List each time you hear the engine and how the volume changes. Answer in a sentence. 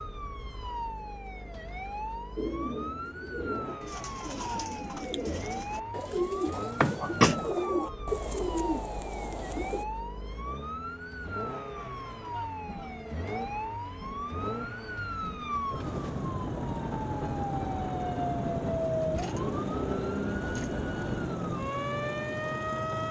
The engine can be heard from 0.0 to 23.0 s, getting louder.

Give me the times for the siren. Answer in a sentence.
The siren can be heard from 0.0 to 23.0 s.